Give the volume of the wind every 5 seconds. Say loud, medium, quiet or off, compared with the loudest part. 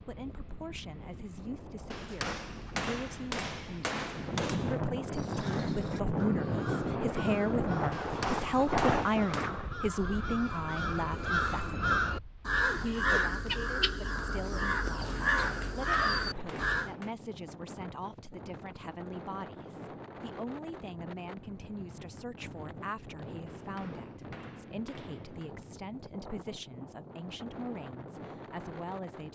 medium, loud, quiet, quiet, quiet, quiet.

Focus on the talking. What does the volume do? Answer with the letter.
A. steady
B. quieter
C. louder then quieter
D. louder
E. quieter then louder
C.